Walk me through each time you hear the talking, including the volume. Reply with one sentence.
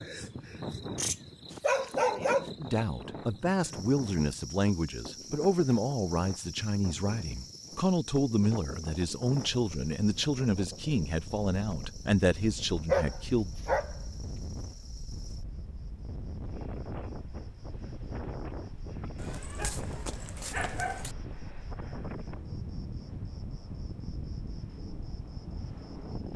The talking can be heard from 2.6 to 13.5 s, at a steady volume.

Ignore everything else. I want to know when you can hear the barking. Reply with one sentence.
The barking can be heard from 0.9 to 2.5 s, from 12.8 to 14.3 s and from 19.1 to 21.1 s.